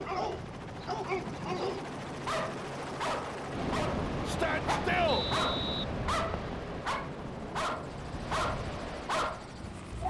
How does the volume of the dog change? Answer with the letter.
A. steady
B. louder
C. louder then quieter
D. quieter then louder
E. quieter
A.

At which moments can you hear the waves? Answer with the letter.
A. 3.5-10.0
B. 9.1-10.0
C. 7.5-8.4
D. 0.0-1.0
A.